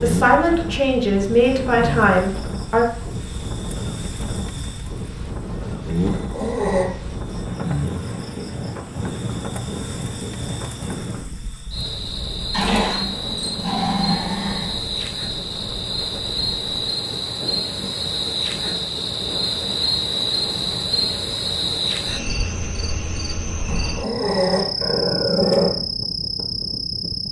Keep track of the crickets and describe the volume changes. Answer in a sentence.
The loudness of the crickets goes up.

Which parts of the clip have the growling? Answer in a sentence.
The growling can be heard from 6.0 to 6.9 s, from 12.5 to 14.8 s and from 23.6 to 25.7 s.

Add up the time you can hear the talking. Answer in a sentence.
You can hear the talking for 3 seconds altogether.